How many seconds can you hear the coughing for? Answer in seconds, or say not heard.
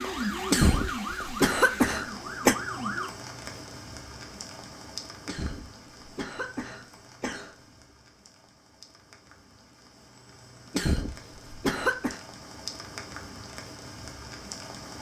6 s.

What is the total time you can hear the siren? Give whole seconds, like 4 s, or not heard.
3 s.